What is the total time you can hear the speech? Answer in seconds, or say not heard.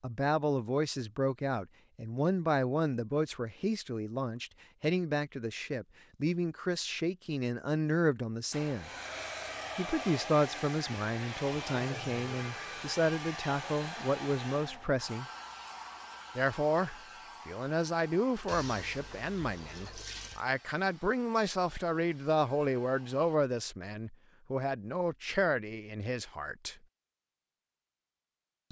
25 s.